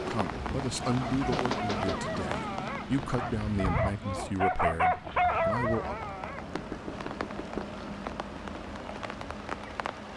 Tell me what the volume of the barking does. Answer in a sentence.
The loudness of the barking goes up.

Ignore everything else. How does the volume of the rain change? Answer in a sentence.
The loudness of the rain goes down, then up.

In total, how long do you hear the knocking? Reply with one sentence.
The knocking can be heard for 2 seconds in total.